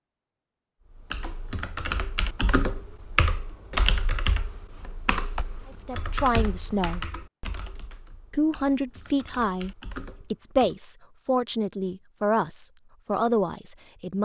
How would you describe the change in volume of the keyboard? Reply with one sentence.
The volume of the keyboard goes down.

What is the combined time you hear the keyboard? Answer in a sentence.
The keyboard can be heard for 10 seconds in total.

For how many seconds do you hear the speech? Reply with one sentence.
You can hear the speech for 7 seconds altogether.